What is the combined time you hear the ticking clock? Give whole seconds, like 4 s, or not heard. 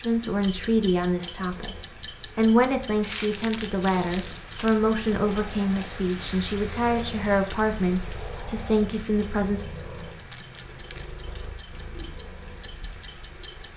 14 s.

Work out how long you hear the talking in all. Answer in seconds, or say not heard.
9 s.